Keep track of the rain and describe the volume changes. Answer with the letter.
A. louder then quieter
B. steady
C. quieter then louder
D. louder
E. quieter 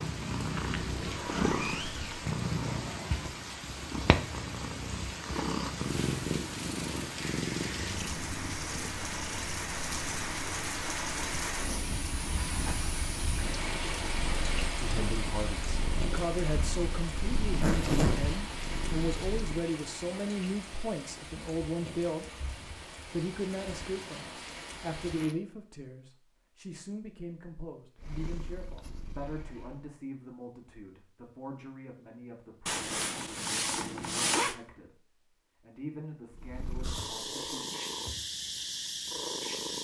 A.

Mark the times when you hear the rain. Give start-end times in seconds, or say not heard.
0.0-25.4.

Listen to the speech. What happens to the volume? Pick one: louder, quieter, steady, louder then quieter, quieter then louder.
quieter.